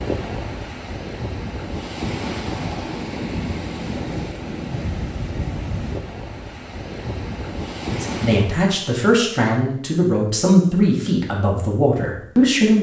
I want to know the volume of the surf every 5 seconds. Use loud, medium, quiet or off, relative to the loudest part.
loud, loud, off.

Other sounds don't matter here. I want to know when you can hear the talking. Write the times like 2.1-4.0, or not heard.
7.8-12.7.